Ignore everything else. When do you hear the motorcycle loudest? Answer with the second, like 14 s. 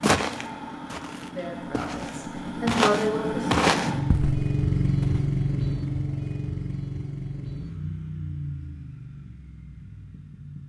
5 s.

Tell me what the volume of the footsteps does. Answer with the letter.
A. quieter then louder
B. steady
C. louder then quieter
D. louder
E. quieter
C.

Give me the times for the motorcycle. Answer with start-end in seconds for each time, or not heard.
0.0-10.6.